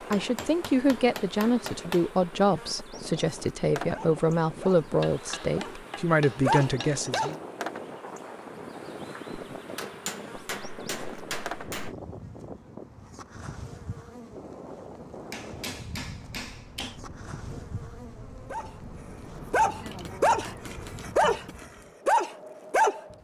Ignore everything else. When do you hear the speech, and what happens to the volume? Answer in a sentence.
You can hear the speech from 0.1 to 7.3 s, at a steady volume.